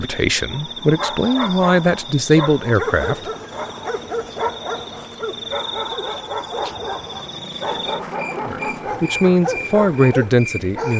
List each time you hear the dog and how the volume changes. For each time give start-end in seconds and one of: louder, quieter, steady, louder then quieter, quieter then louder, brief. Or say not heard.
0.5-10.9 steady.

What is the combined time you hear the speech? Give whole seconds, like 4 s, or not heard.
6 s.